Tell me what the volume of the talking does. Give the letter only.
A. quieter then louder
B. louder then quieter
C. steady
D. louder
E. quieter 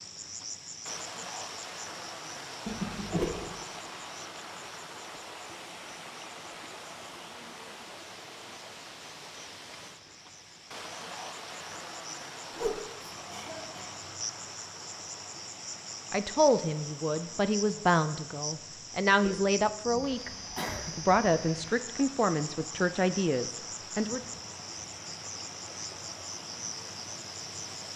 C.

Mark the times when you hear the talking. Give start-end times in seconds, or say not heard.
16.1-20.3, 20.9-24.2.